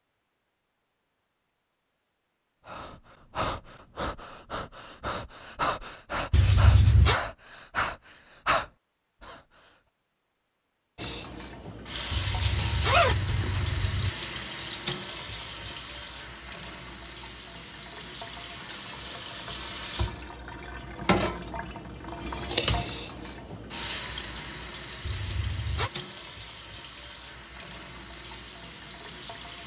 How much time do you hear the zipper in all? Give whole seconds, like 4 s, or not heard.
4 s.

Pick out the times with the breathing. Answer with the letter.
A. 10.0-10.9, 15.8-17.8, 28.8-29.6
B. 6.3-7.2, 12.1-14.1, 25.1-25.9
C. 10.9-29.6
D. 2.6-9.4
D.